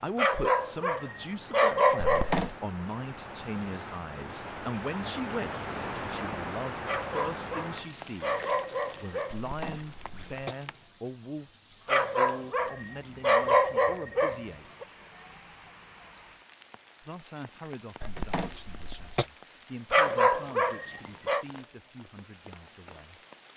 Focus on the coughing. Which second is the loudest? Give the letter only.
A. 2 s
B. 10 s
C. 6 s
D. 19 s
A.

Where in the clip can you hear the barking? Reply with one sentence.
You can hear the barking from 0.1 to 2.4 s, from 6.8 to 9.4 s, from 11.8 to 14.8 s and from 19.9 to 21.4 s.